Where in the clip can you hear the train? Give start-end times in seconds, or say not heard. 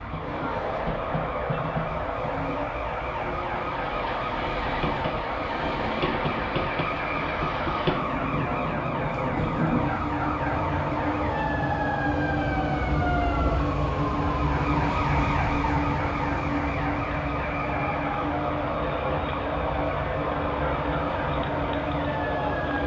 0.0-22.8.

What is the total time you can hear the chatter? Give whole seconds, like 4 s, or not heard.
23 s.